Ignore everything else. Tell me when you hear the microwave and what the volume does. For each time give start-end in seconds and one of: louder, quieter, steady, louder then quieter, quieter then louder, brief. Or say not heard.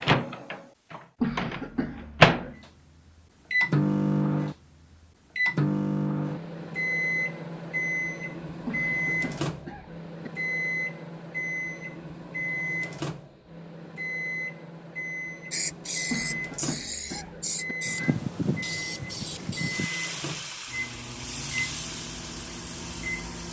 0.0-2.5 brief
3.5-23.4 quieter.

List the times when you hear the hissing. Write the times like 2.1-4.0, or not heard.
15.5-23.4.